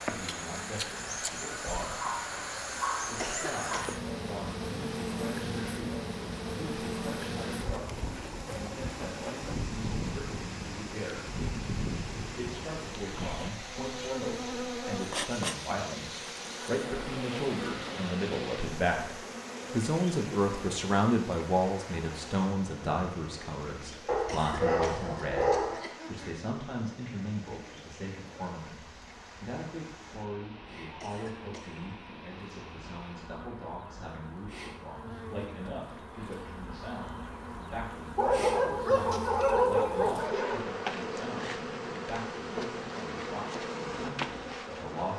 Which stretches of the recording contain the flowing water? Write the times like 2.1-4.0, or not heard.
0.0-33.4.